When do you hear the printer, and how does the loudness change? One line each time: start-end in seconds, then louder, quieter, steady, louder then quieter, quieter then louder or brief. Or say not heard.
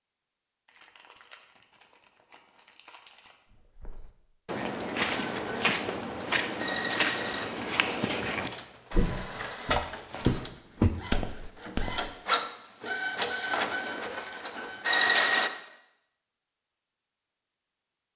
5.1-15.5 quieter then louder.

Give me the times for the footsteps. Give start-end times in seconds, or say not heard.
3.5-12.1.